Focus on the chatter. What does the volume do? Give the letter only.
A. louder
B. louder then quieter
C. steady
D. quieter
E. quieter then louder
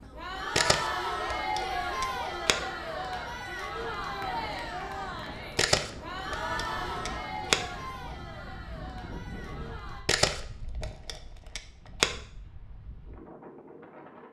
D.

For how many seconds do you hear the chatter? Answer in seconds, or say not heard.
10 s.